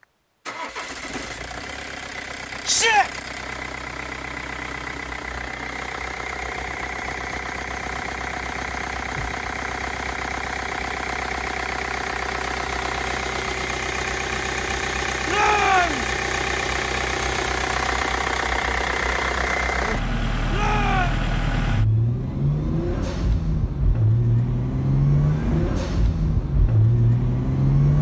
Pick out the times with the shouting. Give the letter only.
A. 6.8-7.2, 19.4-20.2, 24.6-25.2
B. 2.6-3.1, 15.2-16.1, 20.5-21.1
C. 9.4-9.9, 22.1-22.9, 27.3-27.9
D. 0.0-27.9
B.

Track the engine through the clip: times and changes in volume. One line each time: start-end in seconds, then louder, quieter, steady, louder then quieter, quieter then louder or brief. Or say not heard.
0.0-27.9 louder.